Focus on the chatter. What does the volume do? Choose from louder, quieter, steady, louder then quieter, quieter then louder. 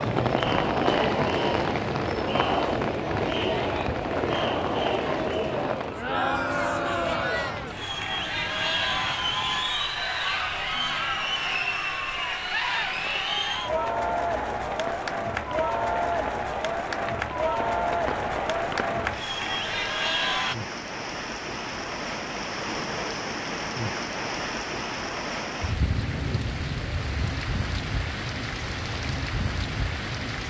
steady.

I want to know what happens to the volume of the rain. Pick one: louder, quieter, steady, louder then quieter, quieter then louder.
quieter then louder.